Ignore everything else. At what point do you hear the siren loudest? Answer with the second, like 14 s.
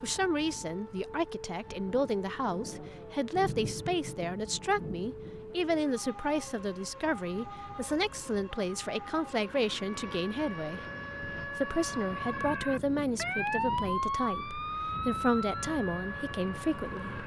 14 s.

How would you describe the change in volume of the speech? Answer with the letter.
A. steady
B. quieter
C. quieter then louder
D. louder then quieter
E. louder
A.